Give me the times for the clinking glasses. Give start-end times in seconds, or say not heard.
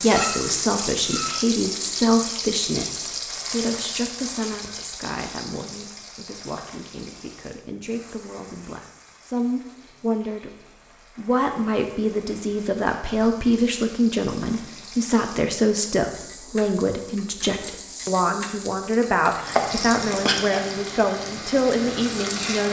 0.1-1.5.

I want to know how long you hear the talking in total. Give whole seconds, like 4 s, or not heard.
22 s.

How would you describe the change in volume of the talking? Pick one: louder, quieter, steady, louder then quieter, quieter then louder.
quieter then louder.